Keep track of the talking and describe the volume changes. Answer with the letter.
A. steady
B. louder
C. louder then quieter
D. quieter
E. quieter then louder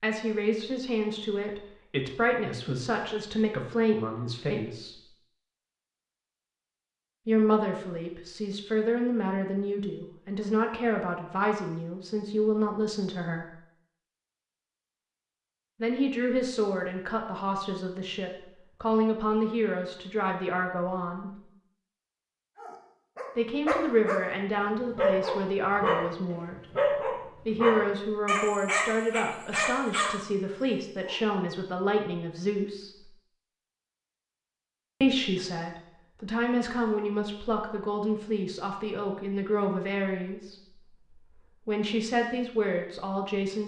A.